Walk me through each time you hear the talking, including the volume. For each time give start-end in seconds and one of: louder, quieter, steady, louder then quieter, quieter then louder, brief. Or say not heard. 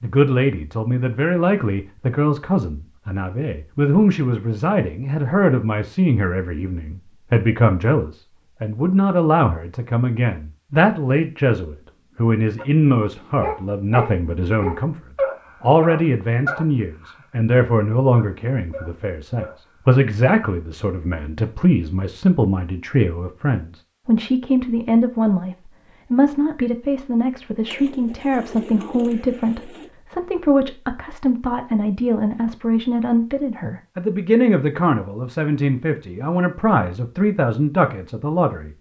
0.0-14.9 steady
15.6-38.7 steady.